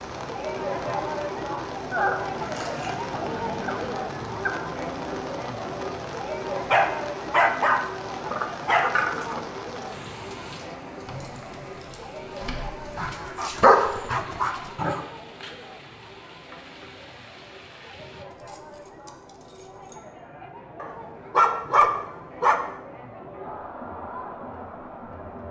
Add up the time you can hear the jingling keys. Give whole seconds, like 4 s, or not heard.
5 s.